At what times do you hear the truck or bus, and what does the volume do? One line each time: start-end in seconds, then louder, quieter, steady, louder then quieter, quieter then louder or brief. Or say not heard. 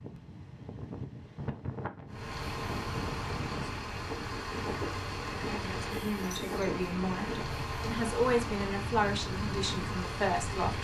2.0-10.7 steady.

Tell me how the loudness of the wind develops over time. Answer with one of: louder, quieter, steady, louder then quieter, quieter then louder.
steady.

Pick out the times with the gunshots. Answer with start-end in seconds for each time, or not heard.
not heard.